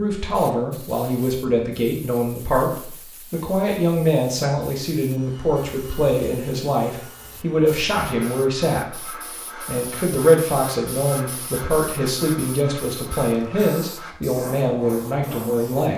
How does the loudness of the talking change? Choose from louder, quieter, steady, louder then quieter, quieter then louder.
steady.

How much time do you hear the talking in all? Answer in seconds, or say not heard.
16 s.